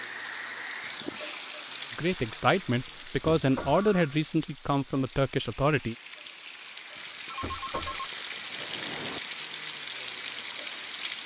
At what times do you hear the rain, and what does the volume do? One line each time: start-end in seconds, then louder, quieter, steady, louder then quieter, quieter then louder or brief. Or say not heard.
0.0-11.2 quieter then louder.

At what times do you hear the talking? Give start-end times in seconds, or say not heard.
1.9-6.0.